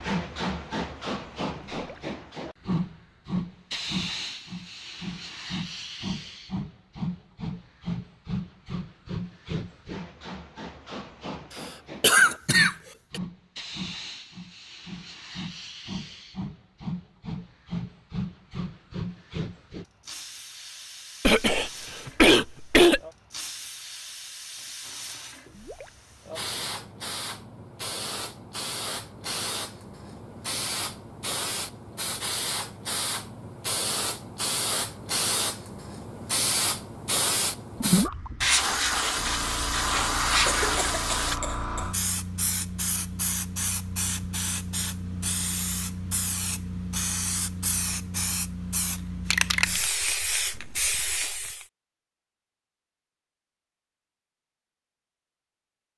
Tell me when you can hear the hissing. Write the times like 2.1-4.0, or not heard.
0.0-51.6.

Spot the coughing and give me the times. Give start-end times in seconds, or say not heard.
11.6-13.2, 21.2-23.0, 40.5-42.0.